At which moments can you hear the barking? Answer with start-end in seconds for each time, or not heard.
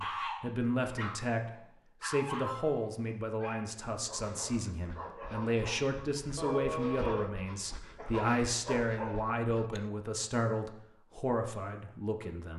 0.0-9.8.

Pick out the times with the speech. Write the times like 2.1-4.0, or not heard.
0.0-12.5.